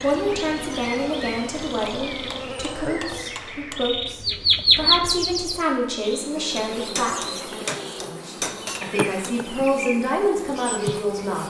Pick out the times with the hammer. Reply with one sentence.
You can hear the hammer from 2.1 to 3.9 s and from 6.5 to 9.3 s.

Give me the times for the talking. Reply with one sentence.
You can hear the talking from 0.0 to 11.4 s.